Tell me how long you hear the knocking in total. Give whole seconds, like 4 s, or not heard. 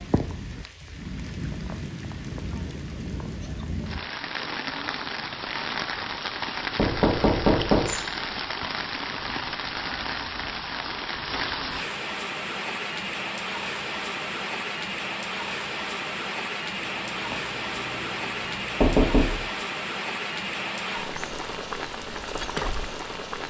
2 s.